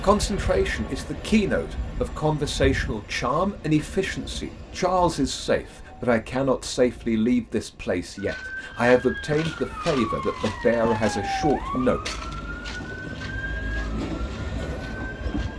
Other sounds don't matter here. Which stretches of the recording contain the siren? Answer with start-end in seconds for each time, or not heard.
8.2-15.5.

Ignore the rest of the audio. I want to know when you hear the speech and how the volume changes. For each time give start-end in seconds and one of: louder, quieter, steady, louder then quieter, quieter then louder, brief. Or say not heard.
0.0-12.0 steady.